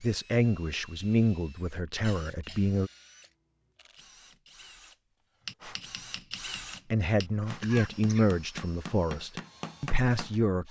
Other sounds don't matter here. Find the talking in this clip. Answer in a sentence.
You can hear the talking from 0.0 to 2.9 s and from 6.9 to 10.6 s.